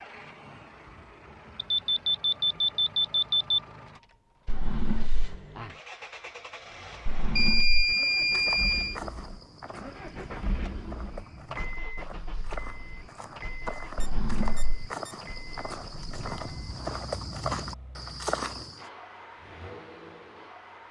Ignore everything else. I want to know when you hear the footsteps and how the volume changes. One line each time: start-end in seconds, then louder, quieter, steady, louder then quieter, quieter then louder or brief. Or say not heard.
8.0-18.9 louder.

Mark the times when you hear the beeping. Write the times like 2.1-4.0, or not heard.
1.6-3.6, 7.3-9.0, 14.0-15.2.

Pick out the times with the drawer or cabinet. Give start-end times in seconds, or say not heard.
4.5-5.3, 7.0-8.0, 13.9-14.8.